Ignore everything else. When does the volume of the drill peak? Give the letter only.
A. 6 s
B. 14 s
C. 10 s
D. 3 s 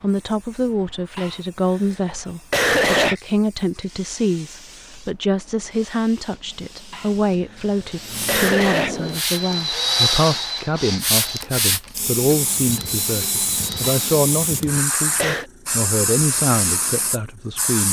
C.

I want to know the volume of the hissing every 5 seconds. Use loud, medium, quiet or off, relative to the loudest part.
quiet, medium, loud, loud.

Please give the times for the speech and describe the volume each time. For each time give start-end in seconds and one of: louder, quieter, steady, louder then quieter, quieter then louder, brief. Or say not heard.
0.0-17.8 steady.